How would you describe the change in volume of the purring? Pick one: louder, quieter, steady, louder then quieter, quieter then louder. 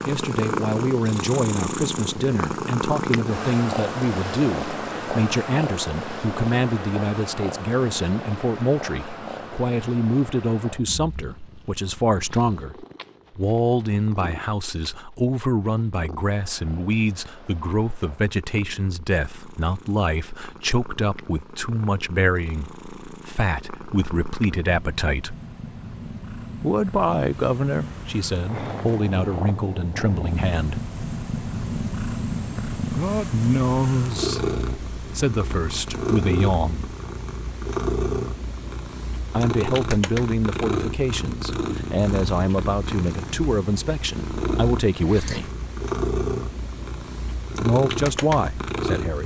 quieter then louder.